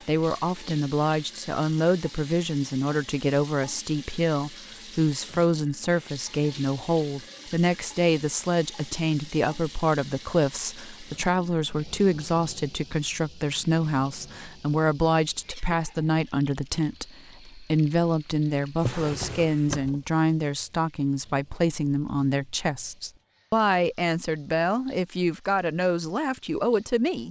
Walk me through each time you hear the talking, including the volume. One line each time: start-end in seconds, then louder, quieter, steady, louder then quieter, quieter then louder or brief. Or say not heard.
0.1-27.2 steady.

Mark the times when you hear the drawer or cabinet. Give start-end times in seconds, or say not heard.
18.8-20.0.